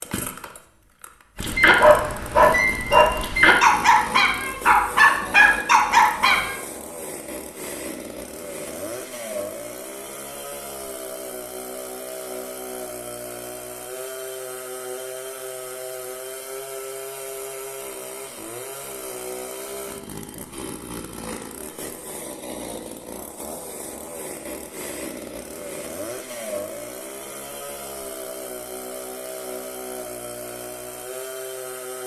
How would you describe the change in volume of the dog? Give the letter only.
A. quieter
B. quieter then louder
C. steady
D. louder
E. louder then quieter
C.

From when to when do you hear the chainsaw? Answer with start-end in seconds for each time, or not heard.
0.0-32.0.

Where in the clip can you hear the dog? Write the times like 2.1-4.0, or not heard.
1.4-6.5.